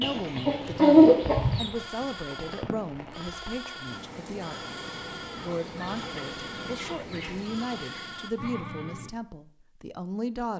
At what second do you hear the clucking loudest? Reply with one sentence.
The loudest moment of the clucking is at 1 second.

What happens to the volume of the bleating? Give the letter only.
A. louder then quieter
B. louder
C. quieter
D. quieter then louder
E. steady
E.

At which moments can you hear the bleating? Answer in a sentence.
The bleating can be heard from 1.8 to 9.1 s.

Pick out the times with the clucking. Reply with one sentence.
The clucking can be heard from 0.0 to 1.7 s and from 5.5 to 8.2 s.